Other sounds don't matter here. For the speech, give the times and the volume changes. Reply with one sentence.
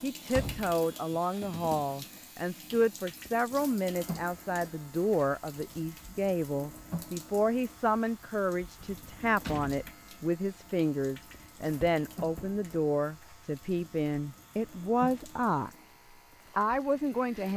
The speech can be heard from 0.0 to 15.7 s, at a steady volume; and briefly from 16.6 to 17.5 s.